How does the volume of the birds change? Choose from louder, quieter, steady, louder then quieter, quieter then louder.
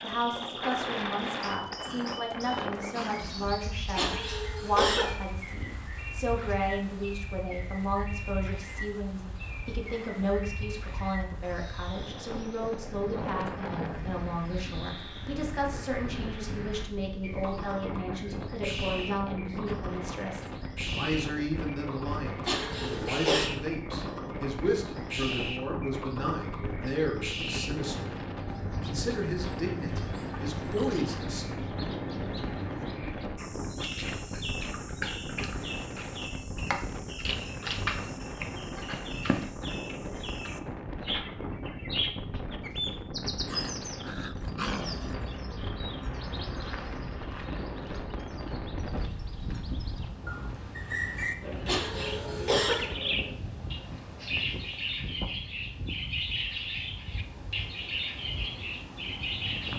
louder.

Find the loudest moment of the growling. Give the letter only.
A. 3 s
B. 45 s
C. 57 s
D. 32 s
B.